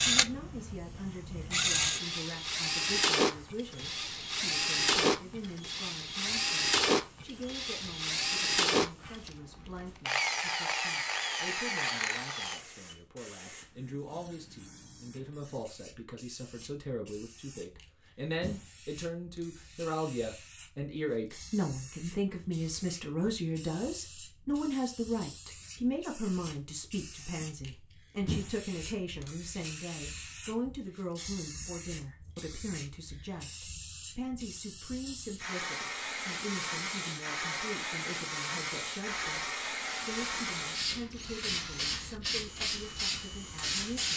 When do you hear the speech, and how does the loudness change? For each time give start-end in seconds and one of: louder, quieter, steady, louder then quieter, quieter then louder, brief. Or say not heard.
0.0-44.1 louder then quieter.